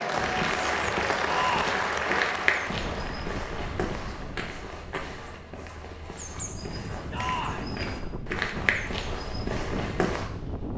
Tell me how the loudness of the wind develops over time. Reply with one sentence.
The volume of the wind goes down, then up.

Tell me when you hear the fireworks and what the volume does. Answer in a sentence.
The fireworks can't be heard in this clip.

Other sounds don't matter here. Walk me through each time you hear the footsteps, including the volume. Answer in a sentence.
The footsteps can be heard from 0.1 to 10.3 s, getting quieter then louder.